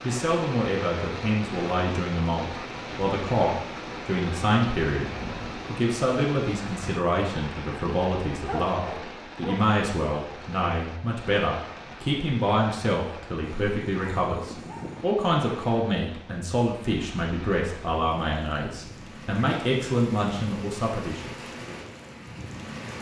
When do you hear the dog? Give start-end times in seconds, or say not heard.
8.3-9.6, 13.4-15.1.